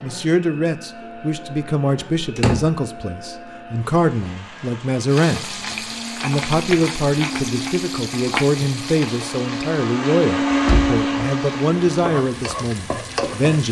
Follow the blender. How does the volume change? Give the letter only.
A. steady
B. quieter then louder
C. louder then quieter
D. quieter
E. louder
E.